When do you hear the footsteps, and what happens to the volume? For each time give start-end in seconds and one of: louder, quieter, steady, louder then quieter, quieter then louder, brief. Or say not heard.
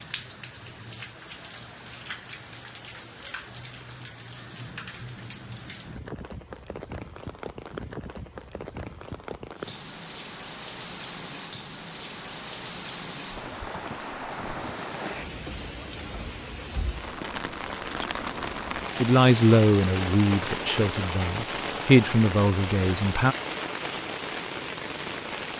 not heard.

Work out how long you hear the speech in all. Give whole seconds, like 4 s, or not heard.
4 s.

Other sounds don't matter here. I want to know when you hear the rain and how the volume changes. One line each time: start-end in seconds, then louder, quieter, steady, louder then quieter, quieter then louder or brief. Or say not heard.
0.0-25.5 louder.